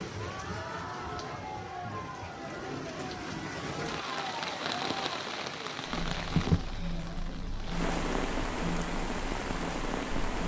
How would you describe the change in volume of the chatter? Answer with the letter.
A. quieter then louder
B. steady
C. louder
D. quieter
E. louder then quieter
B.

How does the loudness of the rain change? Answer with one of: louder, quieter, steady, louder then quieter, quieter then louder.
louder.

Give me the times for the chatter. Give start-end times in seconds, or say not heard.
0.1-10.4.